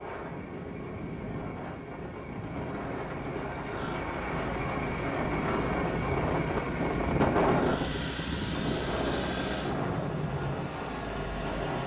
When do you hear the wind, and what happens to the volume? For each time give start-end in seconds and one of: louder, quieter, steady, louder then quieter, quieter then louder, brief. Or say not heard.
0.0-11.8 louder then quieter.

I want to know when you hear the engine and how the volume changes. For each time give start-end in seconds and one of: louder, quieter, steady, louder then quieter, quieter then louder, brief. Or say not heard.
0.0-11.8 louder.